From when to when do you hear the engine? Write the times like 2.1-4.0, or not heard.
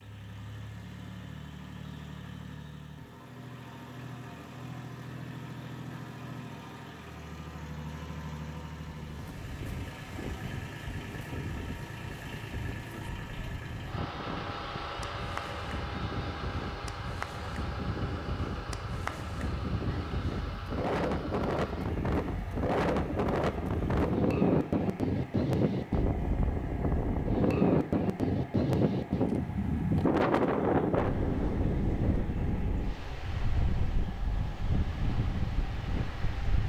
0.0-36.6.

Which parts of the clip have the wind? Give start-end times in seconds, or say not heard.
8.9-36.6.